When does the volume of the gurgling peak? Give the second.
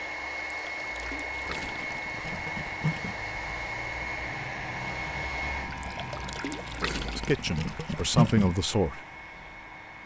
8 s.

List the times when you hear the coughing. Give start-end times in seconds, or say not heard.
not heard.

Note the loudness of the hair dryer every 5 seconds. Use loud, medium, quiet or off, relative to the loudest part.
loud, medium.